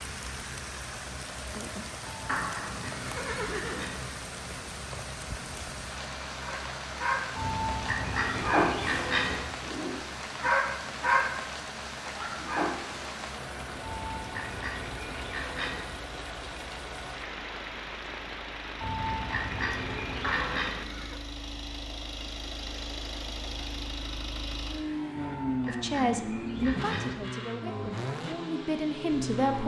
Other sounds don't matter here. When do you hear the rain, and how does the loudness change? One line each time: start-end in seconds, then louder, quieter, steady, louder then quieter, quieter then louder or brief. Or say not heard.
0.0-20.9 steady.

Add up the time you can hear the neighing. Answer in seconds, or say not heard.
3 s.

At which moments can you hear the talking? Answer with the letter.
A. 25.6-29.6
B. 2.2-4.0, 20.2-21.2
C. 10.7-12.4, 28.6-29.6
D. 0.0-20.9
A.